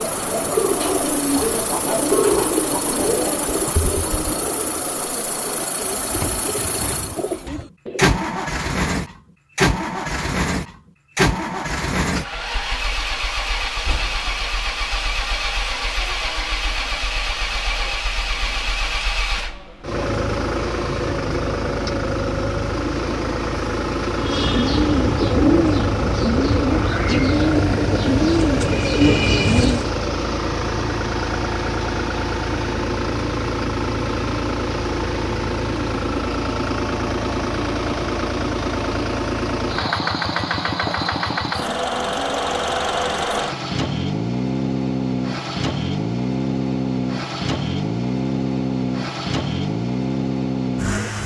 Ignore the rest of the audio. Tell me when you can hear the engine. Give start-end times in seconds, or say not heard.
0.0-51.2.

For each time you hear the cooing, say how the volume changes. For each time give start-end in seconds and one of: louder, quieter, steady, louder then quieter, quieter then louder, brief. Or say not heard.
0.0-8.2 quieter
24.1-29.9 steady.